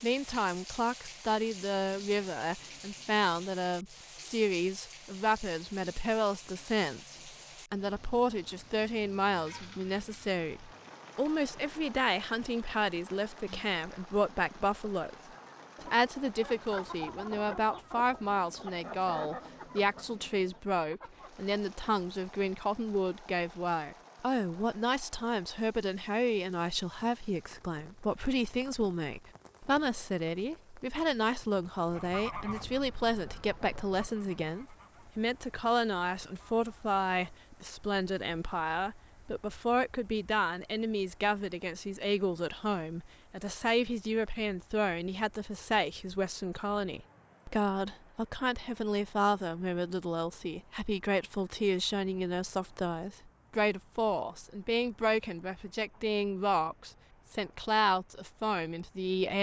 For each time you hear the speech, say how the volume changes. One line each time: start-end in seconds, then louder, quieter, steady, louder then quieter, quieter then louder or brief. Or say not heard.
0.0-15.2 steady
15.8-59.3 steady.